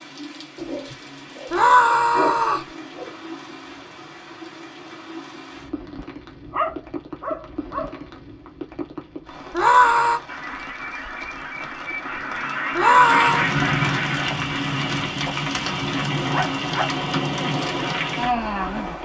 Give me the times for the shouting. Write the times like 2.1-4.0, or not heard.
1.5-2.7, 9.5-10.2, 12.8-13.5.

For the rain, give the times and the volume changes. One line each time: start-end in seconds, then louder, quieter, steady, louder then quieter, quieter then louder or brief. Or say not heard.
0.0-18.9 louder.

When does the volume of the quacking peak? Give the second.
13 s.